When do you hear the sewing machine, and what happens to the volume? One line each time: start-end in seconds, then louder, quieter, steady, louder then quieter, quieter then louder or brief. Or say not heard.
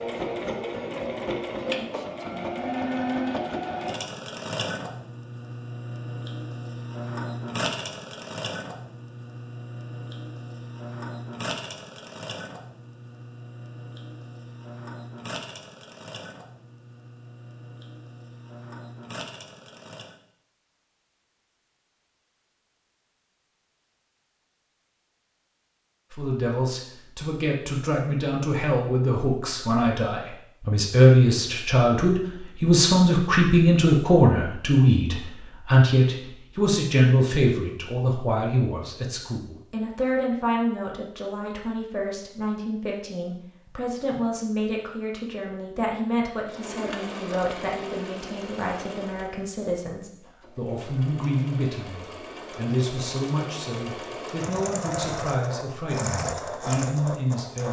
0.0-20.1 quieter
46.5-57.6 quieter then louder.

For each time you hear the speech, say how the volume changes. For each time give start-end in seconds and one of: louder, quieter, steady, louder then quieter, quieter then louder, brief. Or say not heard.
26.1-57.6 quieter.